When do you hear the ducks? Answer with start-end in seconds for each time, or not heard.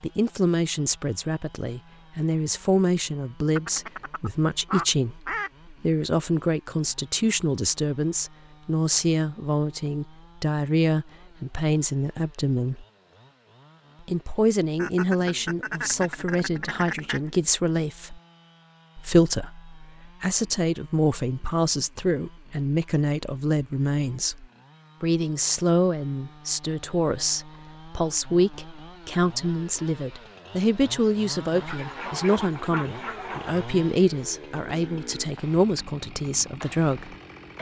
3.5-5.5, 14.8-17.4, 31.5-33.7.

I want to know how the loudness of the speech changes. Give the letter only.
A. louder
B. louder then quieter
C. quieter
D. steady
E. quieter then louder
D.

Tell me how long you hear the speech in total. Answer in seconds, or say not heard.
35 s.